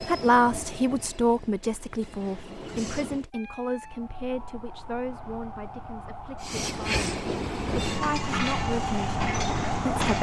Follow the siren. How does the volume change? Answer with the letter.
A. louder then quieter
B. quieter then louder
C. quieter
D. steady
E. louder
E.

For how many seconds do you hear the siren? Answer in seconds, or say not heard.
7 s.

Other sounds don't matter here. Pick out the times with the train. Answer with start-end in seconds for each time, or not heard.
0.0-3.3, 6.4-10.1.